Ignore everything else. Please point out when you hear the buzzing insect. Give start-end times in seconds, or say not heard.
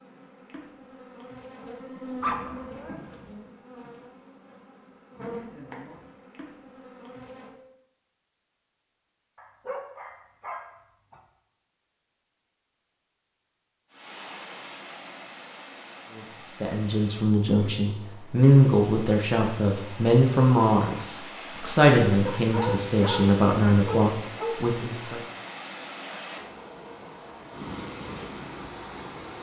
0.0-7.5.